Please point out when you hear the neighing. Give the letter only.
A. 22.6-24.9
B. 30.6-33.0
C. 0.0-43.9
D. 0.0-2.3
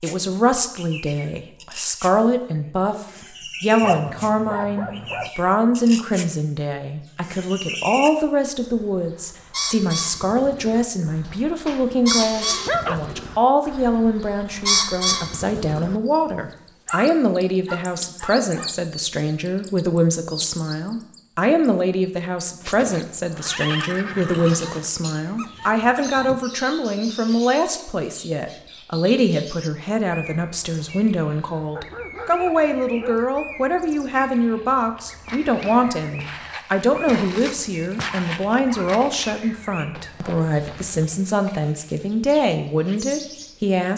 A.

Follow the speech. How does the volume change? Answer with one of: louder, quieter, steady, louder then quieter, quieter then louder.
steady.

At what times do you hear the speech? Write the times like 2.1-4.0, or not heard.
0.0-43.9.